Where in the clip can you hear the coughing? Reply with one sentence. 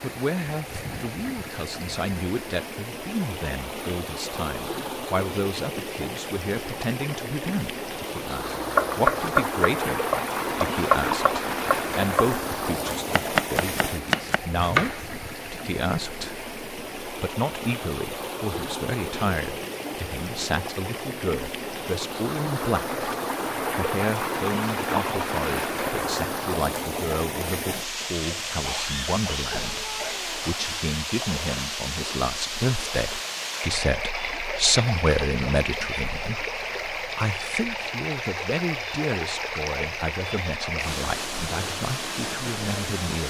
The coughing can be heard from 28.2 to 30.1 s.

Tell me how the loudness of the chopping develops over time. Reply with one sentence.
The loudness of the chopping goes down.